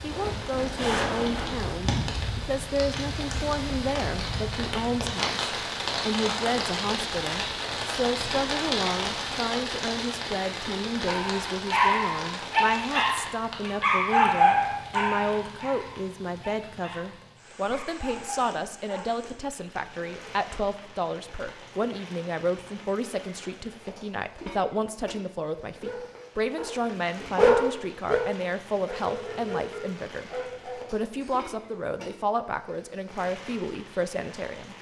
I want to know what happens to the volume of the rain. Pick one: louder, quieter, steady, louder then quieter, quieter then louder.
quieter.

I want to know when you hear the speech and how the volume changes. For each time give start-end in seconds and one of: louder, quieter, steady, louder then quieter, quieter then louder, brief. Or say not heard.
0.0-34.7 steady.